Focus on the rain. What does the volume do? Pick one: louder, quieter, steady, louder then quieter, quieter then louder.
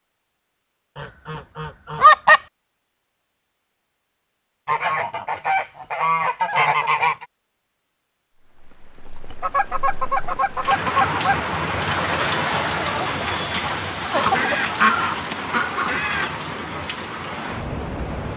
louder then quieter.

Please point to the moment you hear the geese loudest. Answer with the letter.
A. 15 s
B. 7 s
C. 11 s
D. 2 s
D.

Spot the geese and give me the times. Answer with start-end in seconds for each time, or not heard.
0.9-2.4, 4.7-7.2, 9.4-11.4, 14.1-16.6.